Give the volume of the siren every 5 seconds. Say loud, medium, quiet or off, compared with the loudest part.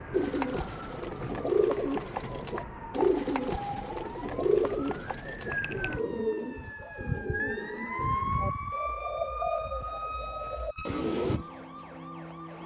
medium, loud, medium.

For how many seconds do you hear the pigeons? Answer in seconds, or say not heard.
11 s.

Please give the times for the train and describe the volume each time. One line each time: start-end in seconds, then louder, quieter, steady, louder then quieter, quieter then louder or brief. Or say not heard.
not heard.